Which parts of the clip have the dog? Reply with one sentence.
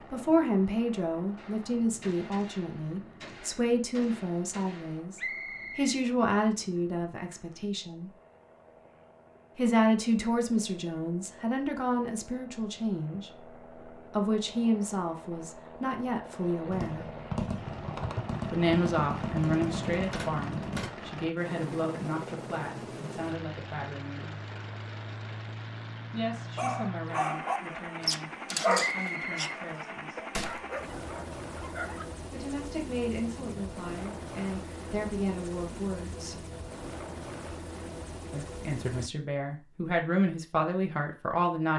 You can hear the dog from 26.6 to 32.0 s.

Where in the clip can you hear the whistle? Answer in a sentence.
The whistle can be heard from 5.2 to 6.0 s and from 28.8 to 29.4 s.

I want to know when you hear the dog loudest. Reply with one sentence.
The volume of the dog peaks at 29 seconds.